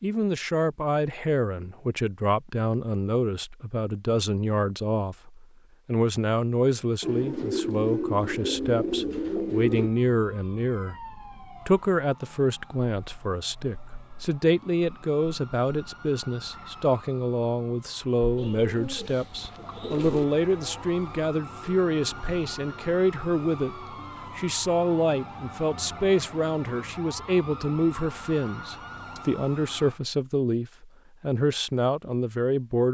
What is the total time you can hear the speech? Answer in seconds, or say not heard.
33 s.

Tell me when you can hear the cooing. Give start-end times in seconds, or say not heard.
7.0-9.9, 18.4-20.2.